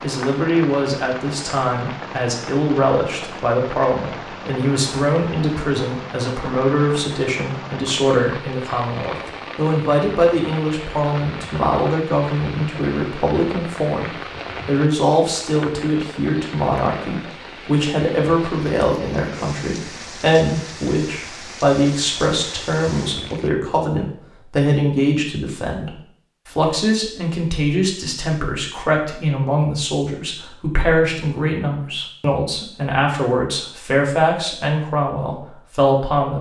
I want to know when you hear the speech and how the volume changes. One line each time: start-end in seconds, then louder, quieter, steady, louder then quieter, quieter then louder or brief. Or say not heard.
0.0-36.3 steady.